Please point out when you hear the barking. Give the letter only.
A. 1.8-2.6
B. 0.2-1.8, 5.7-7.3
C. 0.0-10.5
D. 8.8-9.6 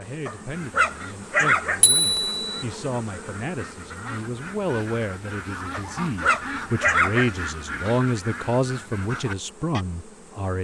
B.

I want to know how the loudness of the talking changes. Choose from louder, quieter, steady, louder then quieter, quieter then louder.
louder.